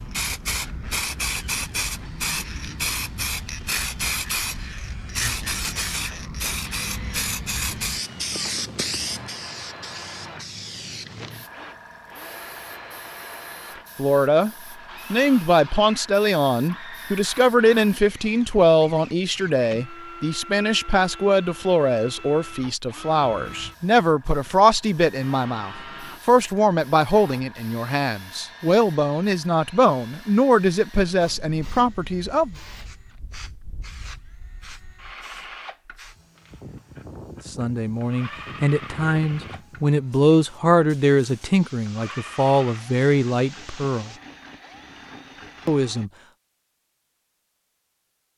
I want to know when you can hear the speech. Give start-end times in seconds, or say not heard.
13.9-14.5, 15.1-32.5, 37.5-44.1, 45.6-46.1.